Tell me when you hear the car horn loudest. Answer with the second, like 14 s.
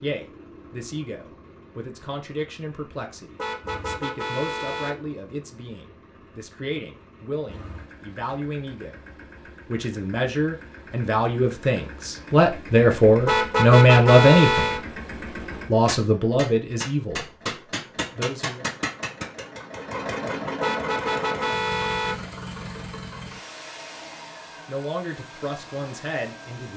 14 s.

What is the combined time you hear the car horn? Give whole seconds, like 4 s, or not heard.
5 s.